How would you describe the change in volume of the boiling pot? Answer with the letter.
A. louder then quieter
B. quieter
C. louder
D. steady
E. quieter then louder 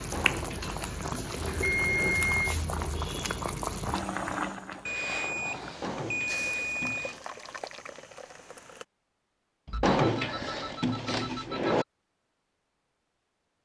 B.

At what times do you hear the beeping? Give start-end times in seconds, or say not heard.
1.4-2.5, 4.8-7.2, 9.7-11.8.